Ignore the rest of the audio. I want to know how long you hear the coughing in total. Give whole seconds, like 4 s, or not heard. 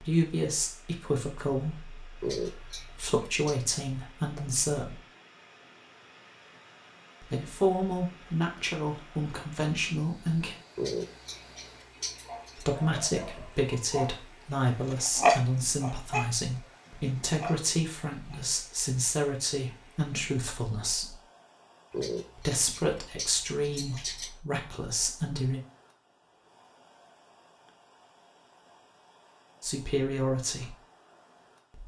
6 s.